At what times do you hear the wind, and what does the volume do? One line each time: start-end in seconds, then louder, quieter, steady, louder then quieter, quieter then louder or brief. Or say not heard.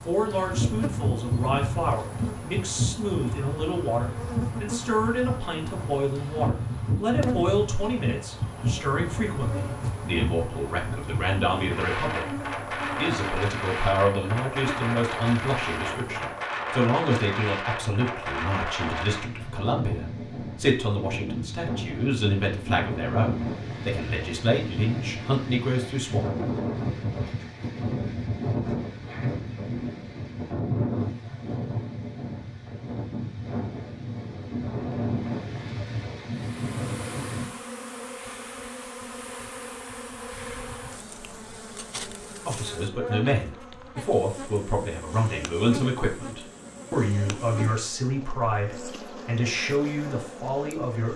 0.0-37.5 steady.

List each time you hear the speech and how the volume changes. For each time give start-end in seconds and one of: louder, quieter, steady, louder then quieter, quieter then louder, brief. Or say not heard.
0.1-12.3 steady
12.9-26.2 steady
42.5-51.1 steady.